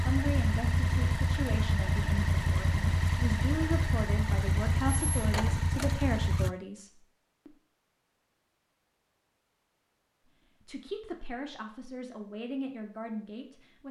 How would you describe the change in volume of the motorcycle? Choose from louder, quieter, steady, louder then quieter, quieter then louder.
steady.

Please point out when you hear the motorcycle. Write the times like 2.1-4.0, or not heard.
0.0-6.5.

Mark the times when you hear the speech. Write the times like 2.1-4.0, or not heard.
0.0-7.5, 10.6-13.8.